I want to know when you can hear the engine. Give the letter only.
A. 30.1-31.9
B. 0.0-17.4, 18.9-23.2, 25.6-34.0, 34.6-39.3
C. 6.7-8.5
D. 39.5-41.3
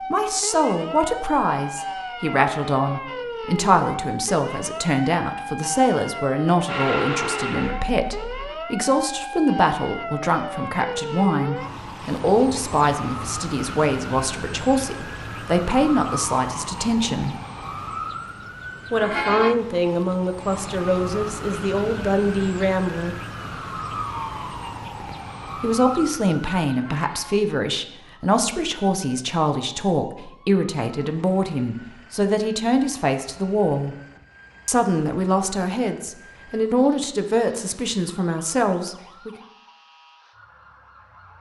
C.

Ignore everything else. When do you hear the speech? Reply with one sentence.
You can hear the speech from 0.0 to 17.4 s, from 18.9 to 23.2 s, from 25.6 to 34.0 s and from 34.6 to 39.3 s.